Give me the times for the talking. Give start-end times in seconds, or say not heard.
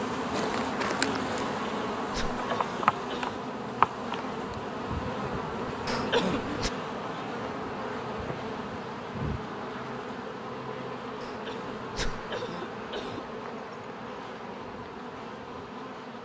not heard.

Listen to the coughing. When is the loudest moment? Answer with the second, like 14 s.
6 s.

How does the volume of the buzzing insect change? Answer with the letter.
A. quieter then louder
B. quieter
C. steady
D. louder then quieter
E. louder
B.